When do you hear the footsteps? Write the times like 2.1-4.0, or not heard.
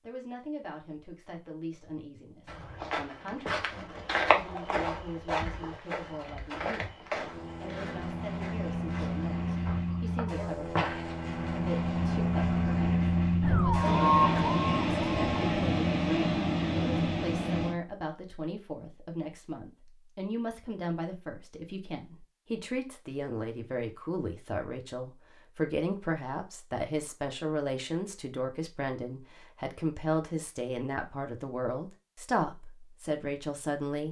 2.5-11.2.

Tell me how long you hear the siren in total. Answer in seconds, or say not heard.
2 s.